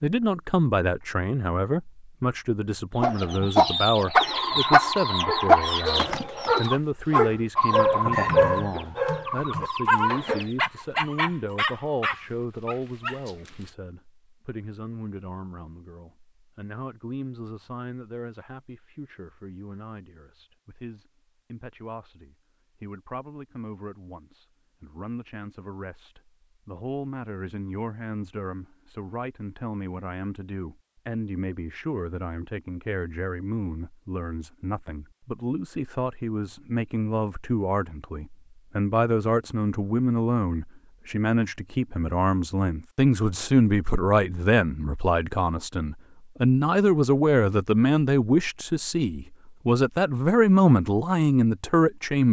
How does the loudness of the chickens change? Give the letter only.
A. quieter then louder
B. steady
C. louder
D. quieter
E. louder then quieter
D.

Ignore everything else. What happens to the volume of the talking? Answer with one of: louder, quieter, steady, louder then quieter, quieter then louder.
quieter then louder.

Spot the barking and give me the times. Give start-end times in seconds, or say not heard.
5.2-13.7.